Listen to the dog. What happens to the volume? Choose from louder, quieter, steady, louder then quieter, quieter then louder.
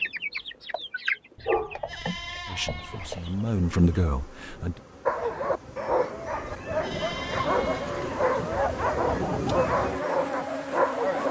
steady.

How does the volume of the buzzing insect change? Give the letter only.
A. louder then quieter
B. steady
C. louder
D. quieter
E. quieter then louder
C.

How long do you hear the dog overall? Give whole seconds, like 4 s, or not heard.
6 s.